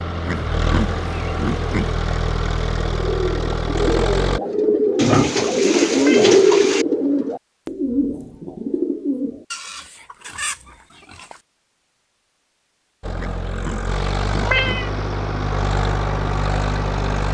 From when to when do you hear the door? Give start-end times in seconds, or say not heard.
not heard.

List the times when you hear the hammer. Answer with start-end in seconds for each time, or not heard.
not heard.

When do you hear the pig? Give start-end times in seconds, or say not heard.
0.2-1.9, 5.0-6.8, 9.5-11.4, 13.2-14.9.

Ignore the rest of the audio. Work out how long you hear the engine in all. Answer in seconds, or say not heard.
9 s.